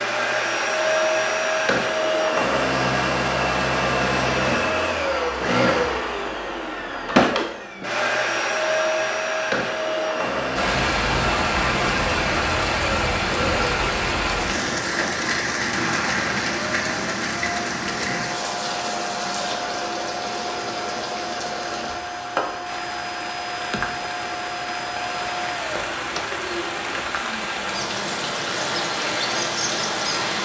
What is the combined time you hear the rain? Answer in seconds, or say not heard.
20 s.